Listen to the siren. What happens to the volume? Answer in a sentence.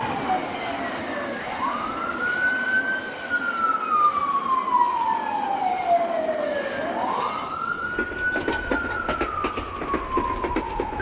The volume of the siren goes up, then down.